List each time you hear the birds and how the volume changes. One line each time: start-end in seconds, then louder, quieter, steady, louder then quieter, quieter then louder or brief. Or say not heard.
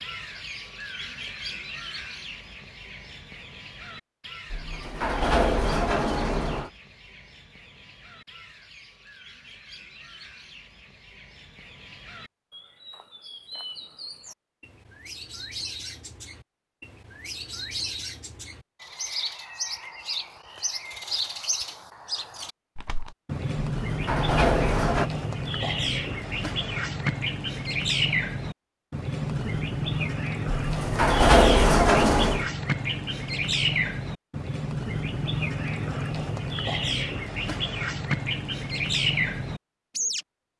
0.0-40.5 louder.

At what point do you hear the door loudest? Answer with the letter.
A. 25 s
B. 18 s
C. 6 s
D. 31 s
D.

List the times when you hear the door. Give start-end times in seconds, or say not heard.
4.5-6.7, 23.7-25.1, 30.5-32.5.